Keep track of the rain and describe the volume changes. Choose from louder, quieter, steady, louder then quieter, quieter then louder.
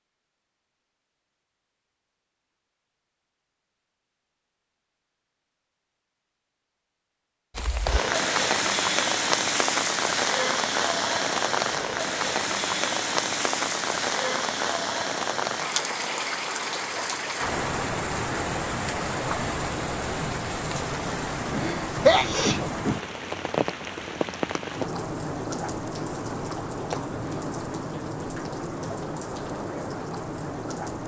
quieter.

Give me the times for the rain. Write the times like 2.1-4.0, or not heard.
7.5-31.0.